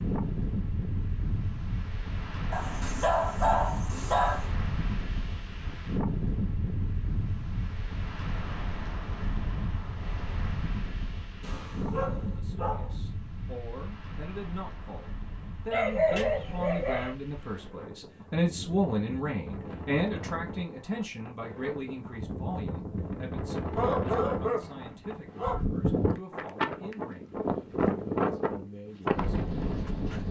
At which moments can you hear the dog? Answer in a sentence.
The dog can be heard from 2.5 to 4.5 s, from 11.4 to 12.9 s, from 15.7 to 17.1 s and from 23.6 to 25.6 s.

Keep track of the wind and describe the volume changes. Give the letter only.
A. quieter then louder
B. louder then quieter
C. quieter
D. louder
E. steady
A.